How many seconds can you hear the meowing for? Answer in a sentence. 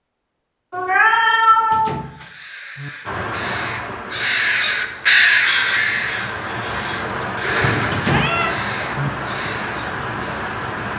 You can hear the meowing for 2 seconds altogether.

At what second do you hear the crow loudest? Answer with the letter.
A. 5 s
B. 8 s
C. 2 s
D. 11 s
A.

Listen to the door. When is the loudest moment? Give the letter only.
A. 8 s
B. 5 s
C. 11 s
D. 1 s
A.